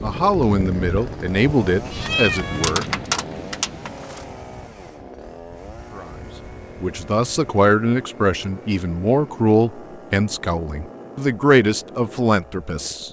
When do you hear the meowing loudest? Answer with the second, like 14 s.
2 s.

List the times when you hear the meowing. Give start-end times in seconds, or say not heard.
1.9-4.2.